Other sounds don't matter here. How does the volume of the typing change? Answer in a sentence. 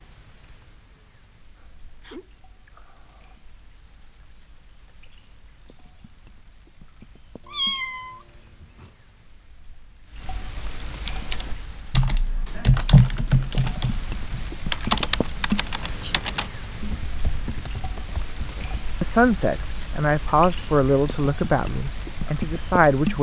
The volume of the typing goes up, then down.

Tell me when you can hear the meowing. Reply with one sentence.
You can hear the meowing from 7.5 to 8.9 s.